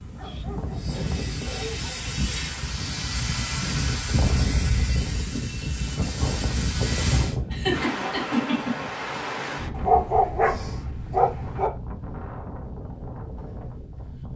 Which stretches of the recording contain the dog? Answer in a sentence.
The dog can be heard from 0.1 to 2.4 s and from 9.8 to 11.7 s.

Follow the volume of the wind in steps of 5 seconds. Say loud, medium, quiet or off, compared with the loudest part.
loud, loud, medium.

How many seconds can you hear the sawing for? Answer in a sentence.
The sawing can be heard for 7 seconds in total.